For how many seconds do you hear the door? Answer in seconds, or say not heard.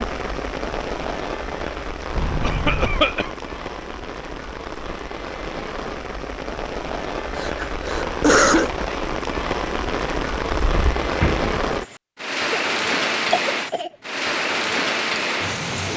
2 s.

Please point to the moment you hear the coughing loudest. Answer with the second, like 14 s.
8 s.